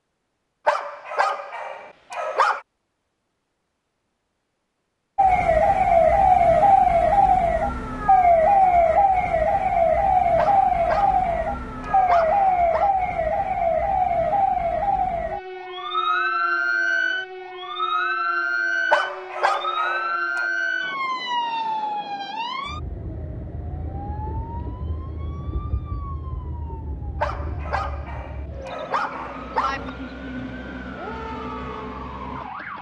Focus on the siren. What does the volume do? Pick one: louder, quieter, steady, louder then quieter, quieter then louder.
quieter.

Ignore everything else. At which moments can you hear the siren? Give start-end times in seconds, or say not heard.
5.2-32.7.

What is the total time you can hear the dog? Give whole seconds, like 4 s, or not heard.
9 s.